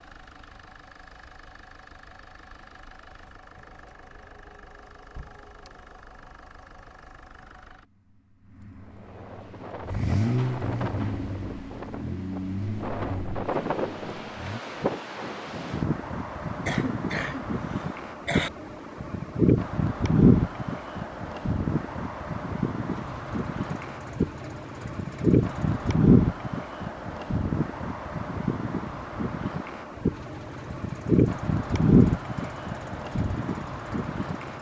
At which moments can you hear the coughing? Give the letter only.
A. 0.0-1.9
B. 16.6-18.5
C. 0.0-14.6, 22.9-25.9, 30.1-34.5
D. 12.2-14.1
B.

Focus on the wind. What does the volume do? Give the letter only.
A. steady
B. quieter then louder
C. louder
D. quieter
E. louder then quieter
C.